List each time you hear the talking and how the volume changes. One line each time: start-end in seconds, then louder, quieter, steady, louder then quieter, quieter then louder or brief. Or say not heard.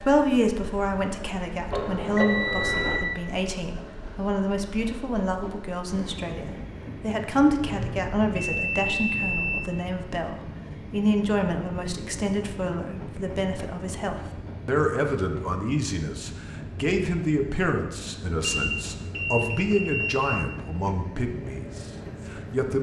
0.0-22.7 steady.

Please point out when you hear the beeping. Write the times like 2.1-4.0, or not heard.
1.7-3.0, 7.7-9.6, 18.4-20.4.